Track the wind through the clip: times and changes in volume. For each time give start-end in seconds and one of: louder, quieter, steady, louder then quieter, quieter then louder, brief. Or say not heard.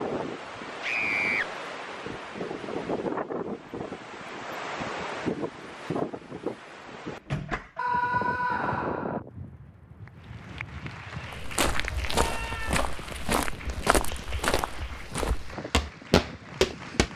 0.0-17.1 quieter.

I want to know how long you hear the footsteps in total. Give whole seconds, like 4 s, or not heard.
6 s.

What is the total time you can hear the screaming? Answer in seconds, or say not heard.
3 s.